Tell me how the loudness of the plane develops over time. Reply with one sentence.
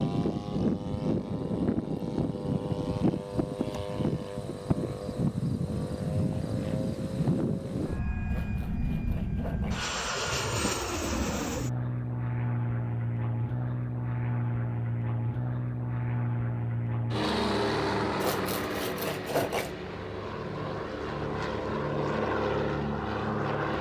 The volume of the plane stays about the same.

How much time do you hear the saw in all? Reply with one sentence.
The saw can be heard for 3 seconds in total.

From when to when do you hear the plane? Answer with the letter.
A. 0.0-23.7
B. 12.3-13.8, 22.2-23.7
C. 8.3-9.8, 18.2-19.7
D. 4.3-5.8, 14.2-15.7
A.